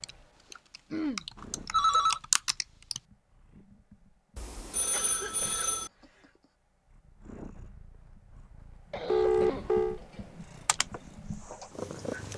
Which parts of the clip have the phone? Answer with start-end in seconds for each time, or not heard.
1.7-2.2, 4.3-5.9, 9.1-10.0.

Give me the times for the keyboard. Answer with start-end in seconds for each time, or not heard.
0.0-3.0, 10.7-12.3.